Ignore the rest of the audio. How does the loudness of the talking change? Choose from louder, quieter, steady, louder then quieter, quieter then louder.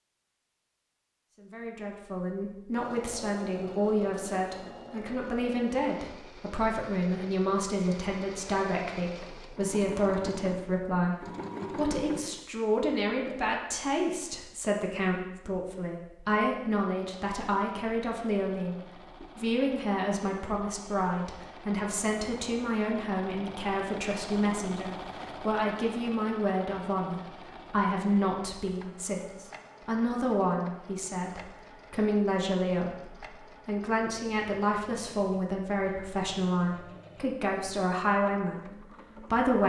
steady.